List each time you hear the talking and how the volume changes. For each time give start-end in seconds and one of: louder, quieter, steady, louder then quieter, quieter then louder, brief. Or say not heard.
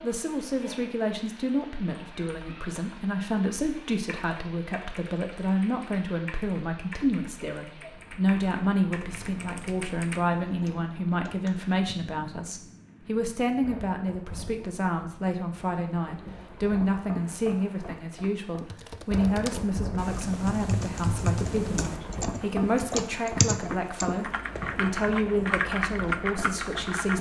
0.0-27.1 steady.